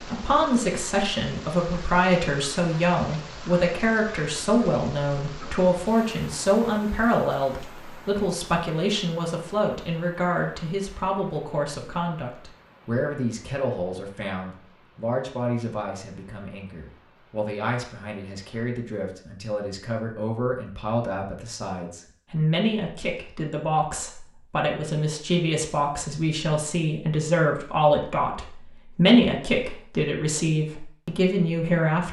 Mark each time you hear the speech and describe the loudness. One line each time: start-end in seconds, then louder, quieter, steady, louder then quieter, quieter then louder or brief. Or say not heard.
0.0-32.0 quieter then louder.